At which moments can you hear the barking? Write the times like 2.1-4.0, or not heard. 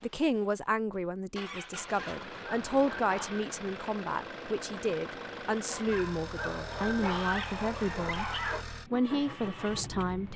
1.8-3.5, 5.7-8.7.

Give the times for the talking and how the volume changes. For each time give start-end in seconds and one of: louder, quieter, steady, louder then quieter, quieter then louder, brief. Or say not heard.
0.0-10.3 steady.